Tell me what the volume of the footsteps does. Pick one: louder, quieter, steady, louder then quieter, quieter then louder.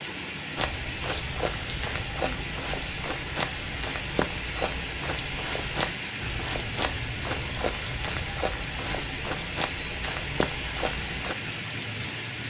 steady.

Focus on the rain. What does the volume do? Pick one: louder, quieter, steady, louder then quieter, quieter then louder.
steady.